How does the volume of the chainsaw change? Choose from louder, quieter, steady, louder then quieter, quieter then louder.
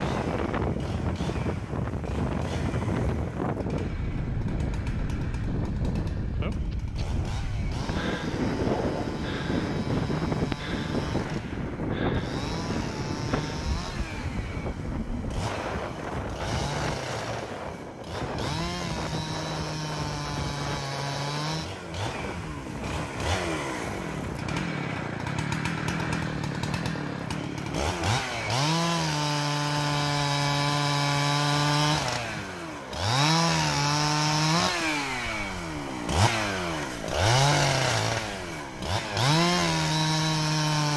louder.